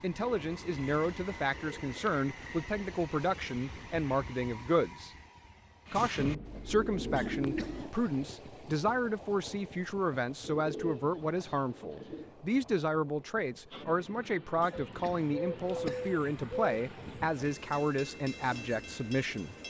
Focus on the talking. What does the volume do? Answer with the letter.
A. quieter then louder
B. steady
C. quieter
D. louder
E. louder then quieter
B.